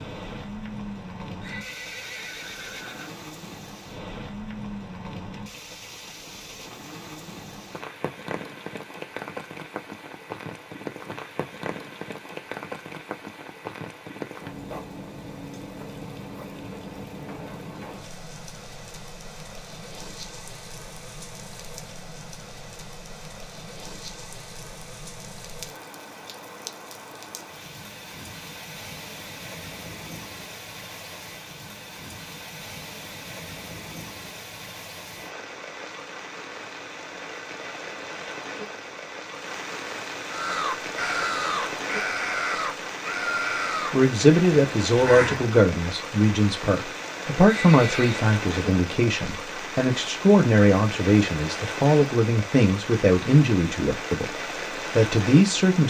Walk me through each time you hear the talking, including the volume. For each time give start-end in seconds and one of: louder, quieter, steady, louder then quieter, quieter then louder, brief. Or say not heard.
43.9-55.8 steady.